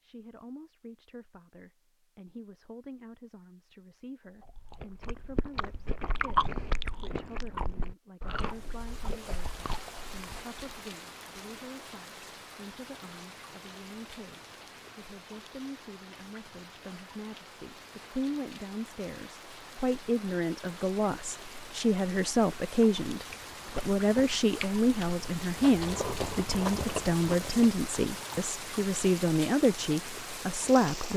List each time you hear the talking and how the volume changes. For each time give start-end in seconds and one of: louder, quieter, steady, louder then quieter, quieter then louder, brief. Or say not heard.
0.0-31.1 louder.